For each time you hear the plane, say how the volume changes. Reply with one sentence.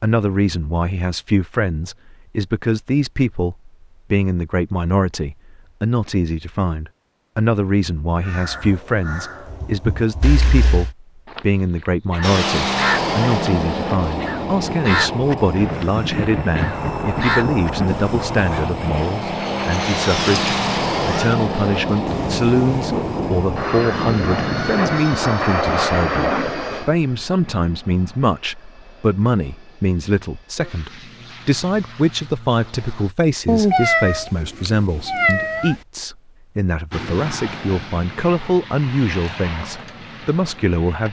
The plane can be heard from 12.2 to 33.1 s, getting quieter; and from 36.9 to 41.0 s, getting quieter.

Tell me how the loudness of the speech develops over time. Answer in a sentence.
The volume of the speech stays about the same.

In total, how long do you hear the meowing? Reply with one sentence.
The meowing can be heard for 4 seconds in total.